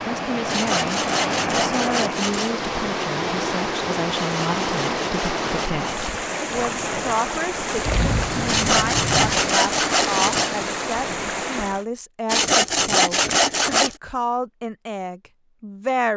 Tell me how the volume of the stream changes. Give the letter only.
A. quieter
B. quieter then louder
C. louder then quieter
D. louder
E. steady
E.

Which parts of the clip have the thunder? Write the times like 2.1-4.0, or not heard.
7.8-9.3.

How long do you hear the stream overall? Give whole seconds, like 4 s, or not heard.
12 s.